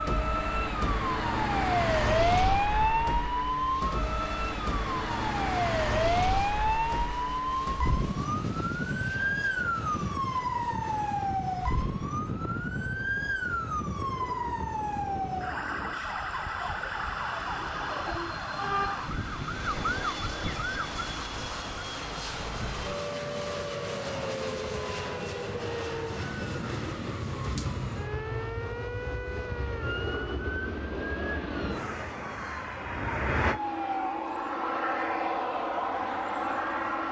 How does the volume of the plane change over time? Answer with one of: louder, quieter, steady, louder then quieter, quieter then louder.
louder.